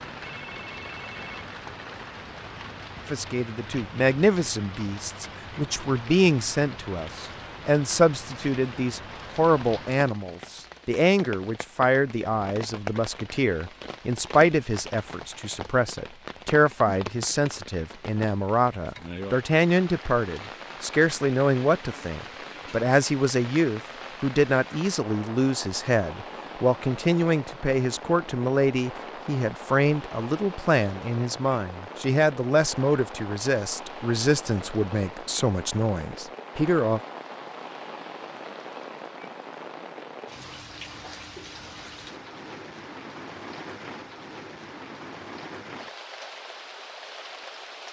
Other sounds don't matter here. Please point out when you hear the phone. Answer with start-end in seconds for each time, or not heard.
0.2-1.4.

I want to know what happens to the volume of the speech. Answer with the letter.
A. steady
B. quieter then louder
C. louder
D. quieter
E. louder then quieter
A.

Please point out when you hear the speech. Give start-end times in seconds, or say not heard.
3.1-37.0.